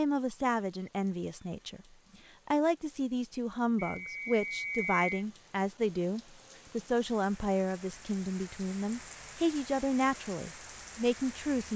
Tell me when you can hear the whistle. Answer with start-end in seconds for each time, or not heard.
3.8-5.0.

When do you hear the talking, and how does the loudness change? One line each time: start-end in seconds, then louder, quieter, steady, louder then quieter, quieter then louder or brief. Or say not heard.
0.0-1.8 brief
2.5-11.7 steady.